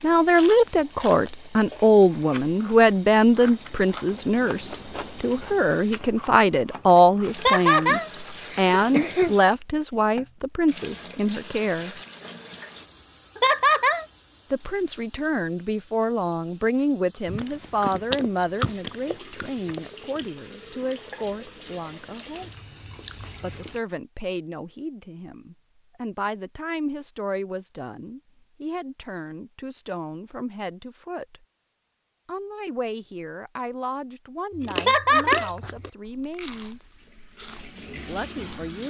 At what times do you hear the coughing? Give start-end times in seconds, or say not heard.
7.3-9.3, 13.3-14.1, 34.8-35.5.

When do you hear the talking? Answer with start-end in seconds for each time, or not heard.
0.0-11.9, 14.5-22.5, 23.4-31.4, 32.2-37.0, 38.0-38.8.